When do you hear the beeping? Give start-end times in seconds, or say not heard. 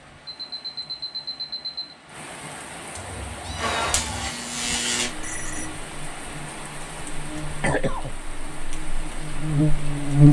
0.2-1.9, 5.2-5.8.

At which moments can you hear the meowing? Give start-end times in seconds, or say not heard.
3.0-4.3.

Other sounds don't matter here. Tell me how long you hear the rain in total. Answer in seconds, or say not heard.
10 s.